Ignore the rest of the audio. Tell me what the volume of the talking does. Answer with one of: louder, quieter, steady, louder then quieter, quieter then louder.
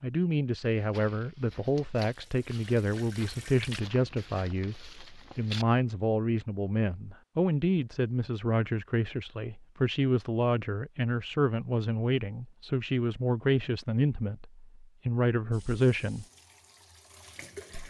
steady.